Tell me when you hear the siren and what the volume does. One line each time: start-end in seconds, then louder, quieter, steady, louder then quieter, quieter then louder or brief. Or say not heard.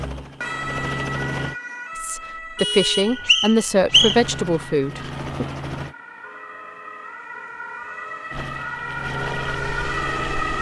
0.2-10.5 quieter then louder.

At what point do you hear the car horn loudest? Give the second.
3 s.